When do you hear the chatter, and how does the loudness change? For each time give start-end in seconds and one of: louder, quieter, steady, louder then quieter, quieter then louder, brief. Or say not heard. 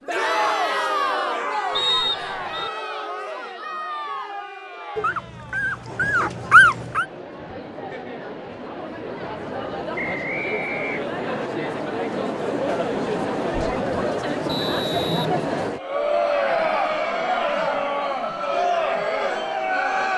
0.0-20.1 quieter then louder.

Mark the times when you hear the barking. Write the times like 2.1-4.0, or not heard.
5.0-7.0.